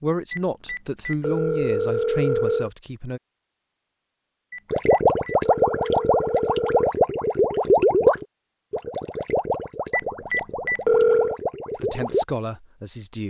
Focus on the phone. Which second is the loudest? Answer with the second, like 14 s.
11 s.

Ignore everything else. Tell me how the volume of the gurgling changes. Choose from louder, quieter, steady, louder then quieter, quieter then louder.
quieter.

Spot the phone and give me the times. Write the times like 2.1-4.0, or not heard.
0.3-2.7, 4.5-7.0, 9.9-11.4.